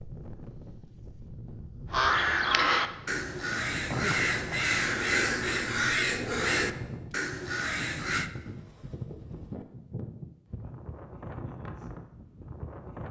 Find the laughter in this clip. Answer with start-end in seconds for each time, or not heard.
3.9-4.8.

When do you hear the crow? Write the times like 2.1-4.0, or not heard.
1.9-8.3.